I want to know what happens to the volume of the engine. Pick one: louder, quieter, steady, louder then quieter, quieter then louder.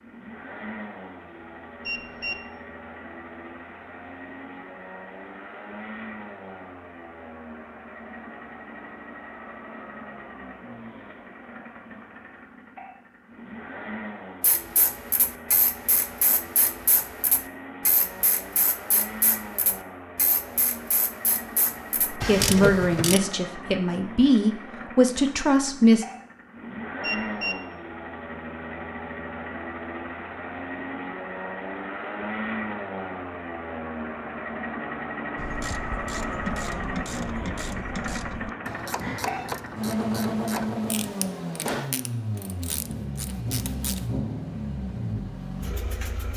louder.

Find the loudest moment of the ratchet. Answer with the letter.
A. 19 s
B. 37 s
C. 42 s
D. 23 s
D.